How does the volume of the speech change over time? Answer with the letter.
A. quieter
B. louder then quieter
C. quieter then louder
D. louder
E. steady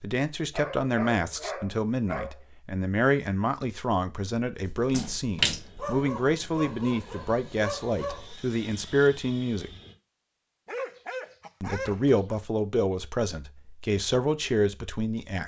E.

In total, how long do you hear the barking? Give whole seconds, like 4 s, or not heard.
6 s.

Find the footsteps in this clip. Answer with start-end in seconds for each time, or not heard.
not heard.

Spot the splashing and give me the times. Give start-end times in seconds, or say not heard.
4.7-6.0.